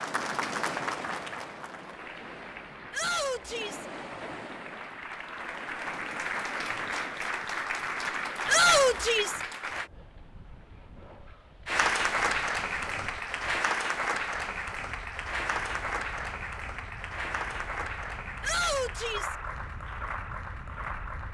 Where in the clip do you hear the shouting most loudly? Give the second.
9 s.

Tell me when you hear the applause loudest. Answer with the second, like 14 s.
12 s.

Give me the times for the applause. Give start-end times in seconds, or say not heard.
0.0-9.9, 11.7-21.2.